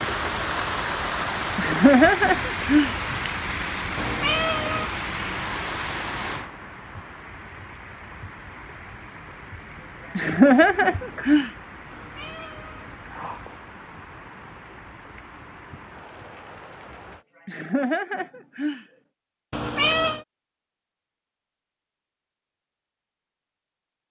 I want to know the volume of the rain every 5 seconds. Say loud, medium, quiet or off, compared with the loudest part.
loud, medium, quiet, quiet, off.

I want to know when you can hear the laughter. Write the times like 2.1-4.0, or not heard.
1.6-3.0, 10.2-11.5, 17.4-18.9.